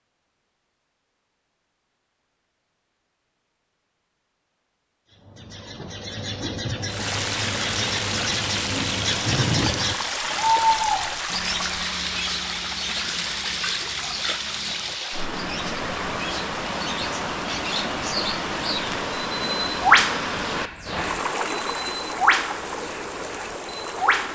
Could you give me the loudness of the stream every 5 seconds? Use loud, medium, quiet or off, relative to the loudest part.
off, loud, loud, loud, loud.